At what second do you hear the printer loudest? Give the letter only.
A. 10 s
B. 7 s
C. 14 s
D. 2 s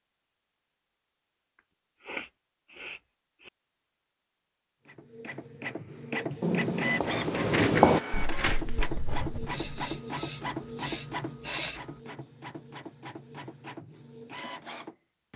B.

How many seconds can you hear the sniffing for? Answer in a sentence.
You can hear the sniffing for 4 seconds altogether.